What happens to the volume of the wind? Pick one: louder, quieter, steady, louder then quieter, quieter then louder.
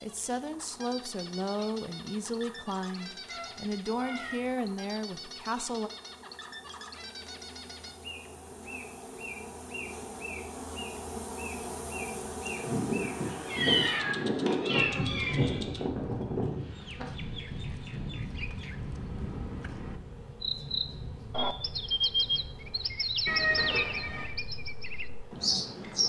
quieter.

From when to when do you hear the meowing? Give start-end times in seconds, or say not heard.
3.2-4.5, 13.4-15.4, 23.2-24.3.